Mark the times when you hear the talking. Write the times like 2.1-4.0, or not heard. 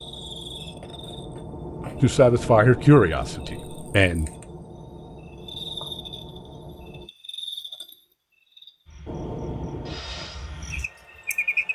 2.0-4.3.